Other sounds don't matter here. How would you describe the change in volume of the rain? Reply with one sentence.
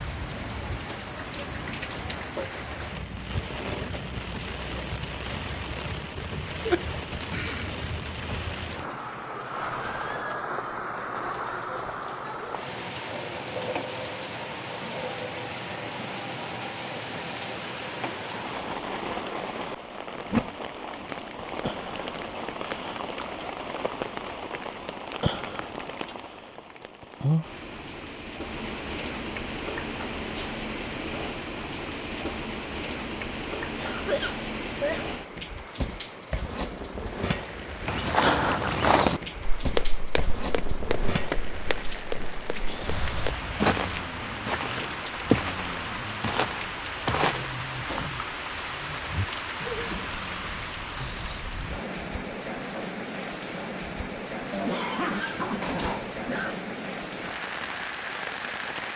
The loudness of the rain stays about the same.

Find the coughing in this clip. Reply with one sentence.
You can hear the coughing from 6.5 to 7.7 s, from 33.8 to 35.0 s and from 54.5 to 56.5 s.